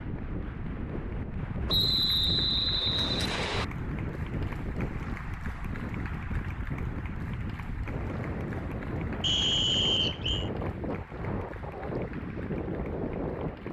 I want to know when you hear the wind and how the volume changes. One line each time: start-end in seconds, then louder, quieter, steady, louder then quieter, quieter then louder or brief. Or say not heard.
0.0-13.6 steady.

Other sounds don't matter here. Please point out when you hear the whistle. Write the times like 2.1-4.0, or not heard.
1.6-3.6, 9.2-10.5.